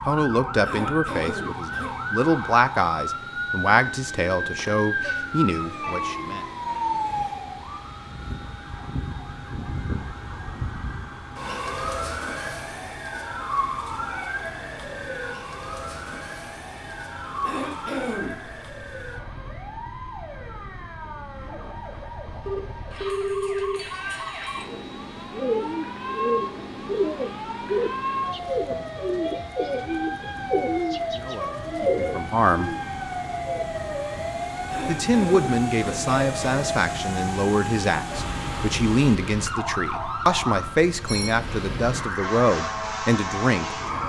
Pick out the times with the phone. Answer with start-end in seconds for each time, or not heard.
4.5-6.2, 22.4-23.8, 40.6-41.4.